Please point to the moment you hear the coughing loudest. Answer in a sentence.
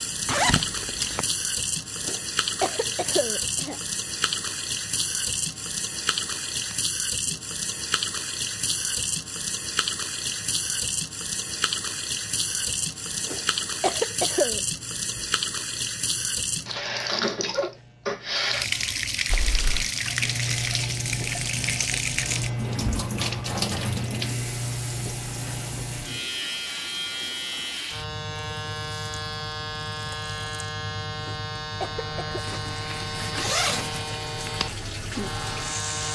The volume of the coughing peaks at 14 seconds.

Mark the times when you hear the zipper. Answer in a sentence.
You can hear the zipper from 0.2 to 1.2 s, from 19.3 to 19.9 s and from 32.5 to 34.2 s.